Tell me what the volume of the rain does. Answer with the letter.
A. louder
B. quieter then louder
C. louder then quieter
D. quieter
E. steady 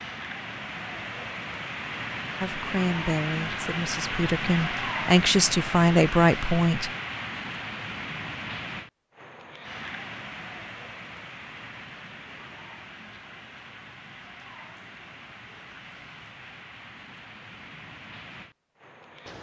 D.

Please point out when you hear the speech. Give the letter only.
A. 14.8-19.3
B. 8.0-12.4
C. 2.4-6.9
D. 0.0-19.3
C.